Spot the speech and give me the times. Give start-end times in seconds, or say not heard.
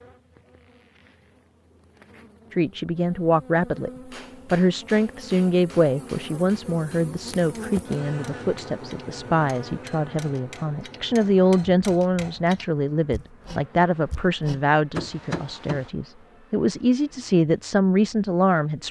2.5-18.8.